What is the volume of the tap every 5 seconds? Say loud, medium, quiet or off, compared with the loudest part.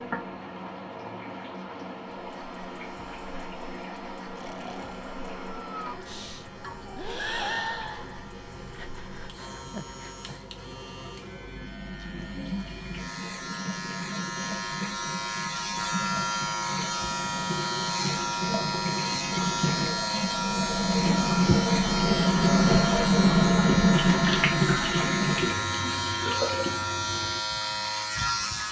quiet, quiet, quiet, medium, loud, medium.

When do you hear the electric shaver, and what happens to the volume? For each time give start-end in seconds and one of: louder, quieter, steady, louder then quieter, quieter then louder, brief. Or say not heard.
2.1-28.6 louder.